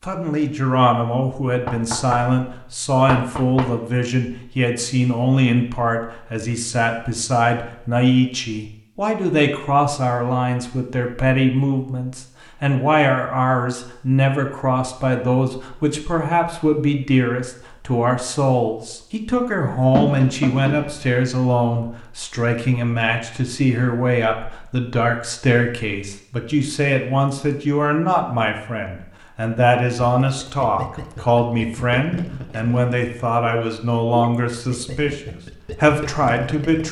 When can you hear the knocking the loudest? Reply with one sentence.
The loudest moment of the knocking is at 20 seconds.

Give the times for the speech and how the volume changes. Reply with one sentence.
You can hear the speech from 0.0 to 36.8 s, at a steady volume.